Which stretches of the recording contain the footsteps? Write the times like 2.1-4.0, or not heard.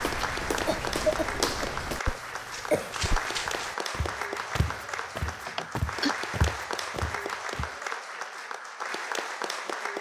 0.0-7.7.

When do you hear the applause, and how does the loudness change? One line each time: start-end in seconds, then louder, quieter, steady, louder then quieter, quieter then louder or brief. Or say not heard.
0.0-9.9 steady.